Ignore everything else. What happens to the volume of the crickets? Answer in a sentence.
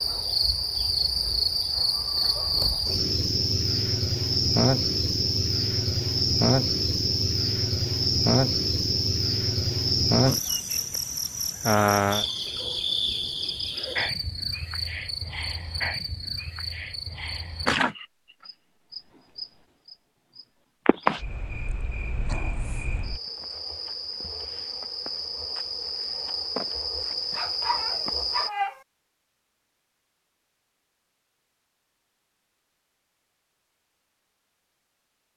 The volume of the crickets goes down.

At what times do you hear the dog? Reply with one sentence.
The dog can be heard from 27.3 to 28.8 s.